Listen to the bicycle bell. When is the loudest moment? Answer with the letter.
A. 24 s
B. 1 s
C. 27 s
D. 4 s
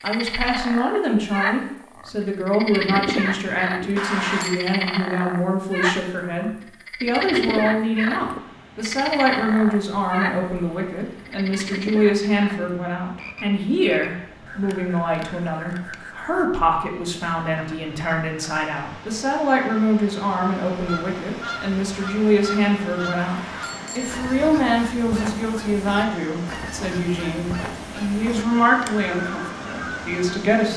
D.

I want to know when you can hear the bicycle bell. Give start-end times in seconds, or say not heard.
4.0-4.5, 23.2-24.2.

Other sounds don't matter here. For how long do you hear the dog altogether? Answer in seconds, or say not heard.
not heard.